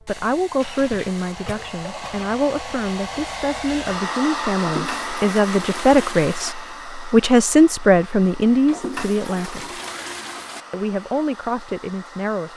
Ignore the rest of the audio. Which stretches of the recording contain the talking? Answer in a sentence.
The talking can be heard from 0.1 to 9.8 s and from 10.7 to 12.5 s.